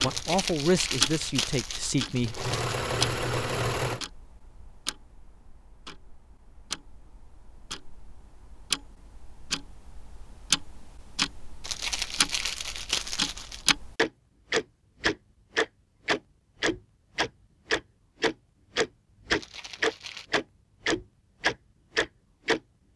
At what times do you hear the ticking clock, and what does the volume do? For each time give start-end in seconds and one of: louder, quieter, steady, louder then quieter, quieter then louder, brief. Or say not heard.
0.0-22.6 quieter then louder.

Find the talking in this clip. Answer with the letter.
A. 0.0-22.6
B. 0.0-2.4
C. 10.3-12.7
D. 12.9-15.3
B.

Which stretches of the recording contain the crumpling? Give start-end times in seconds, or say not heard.
0.1-2.8, 11.6-13.7, 19.4-20.2.